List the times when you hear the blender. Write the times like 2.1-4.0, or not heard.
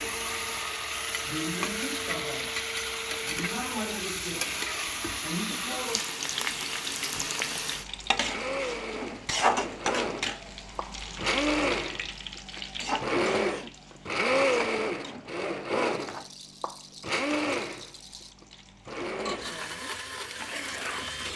0.0-21.3.